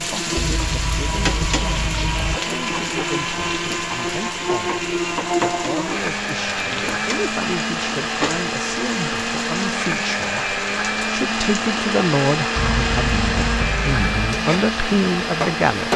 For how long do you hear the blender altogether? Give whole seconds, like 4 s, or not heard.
16 s.